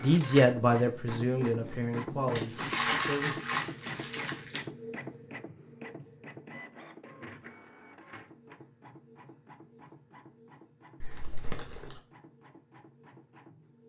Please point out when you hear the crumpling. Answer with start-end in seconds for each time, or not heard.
2.4-4.6, 11.0-12.0.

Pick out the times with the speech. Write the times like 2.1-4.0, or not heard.
0.0-3.4.